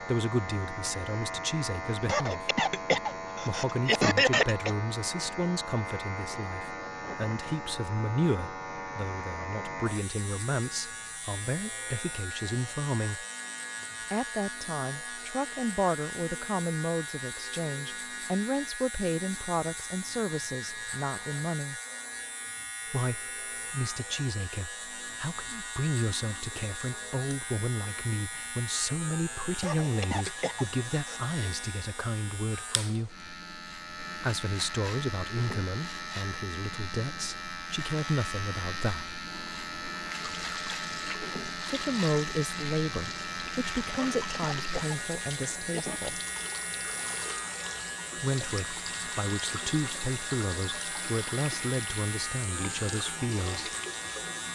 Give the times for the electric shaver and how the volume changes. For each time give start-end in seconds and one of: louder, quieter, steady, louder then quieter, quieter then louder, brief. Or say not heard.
0.0-54.4 steady.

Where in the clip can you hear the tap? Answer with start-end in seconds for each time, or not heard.
39.0-54.4.